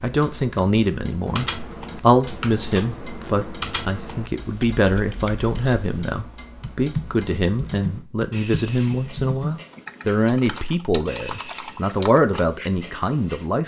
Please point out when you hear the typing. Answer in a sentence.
The typing can be heard from 1.2 to 12.7 s.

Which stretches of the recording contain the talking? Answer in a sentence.
The talking can be heard from 0.0 to 13.6 s.